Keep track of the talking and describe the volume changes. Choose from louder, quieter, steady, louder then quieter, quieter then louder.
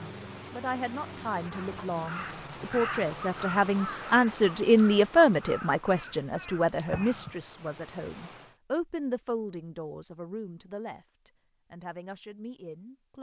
louder then quieter.